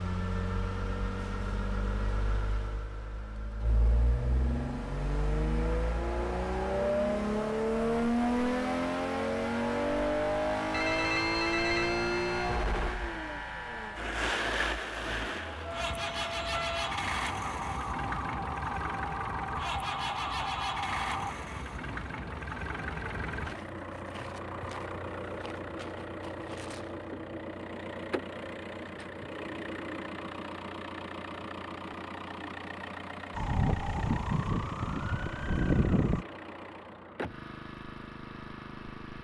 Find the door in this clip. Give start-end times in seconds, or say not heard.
not heard.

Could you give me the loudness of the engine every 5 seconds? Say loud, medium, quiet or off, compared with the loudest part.
medium, loud, loud, medium, medium, medium, medium, quiet.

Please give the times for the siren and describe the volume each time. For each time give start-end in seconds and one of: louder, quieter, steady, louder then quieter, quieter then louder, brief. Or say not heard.
15.6-21.4 steady
33.3-36.2 brief.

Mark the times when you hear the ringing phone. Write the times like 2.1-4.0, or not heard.
10.7-12.7.